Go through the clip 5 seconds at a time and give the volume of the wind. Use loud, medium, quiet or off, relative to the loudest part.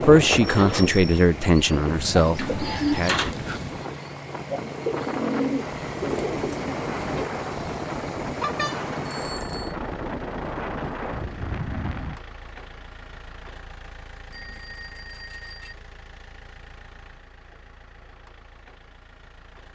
loud, loud, loud, off.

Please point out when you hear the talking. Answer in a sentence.
You can hear the talking from 0.0 to 3.3 s.